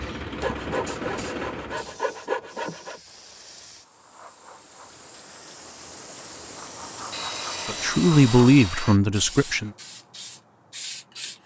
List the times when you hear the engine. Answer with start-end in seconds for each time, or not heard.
0.0-1.9.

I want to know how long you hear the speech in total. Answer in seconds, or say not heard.
2 s.